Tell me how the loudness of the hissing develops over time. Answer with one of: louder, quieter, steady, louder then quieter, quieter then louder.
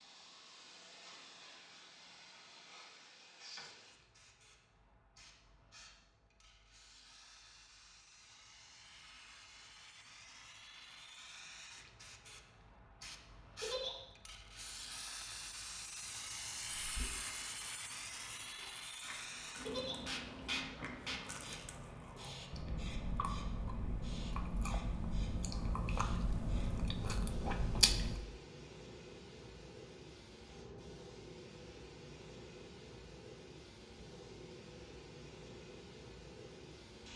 louder then quieter.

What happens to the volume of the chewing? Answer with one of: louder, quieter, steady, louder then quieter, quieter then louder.
louder.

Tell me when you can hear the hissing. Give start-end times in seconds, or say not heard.
0.0-37.1.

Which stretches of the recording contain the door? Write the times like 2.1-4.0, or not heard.
not heard.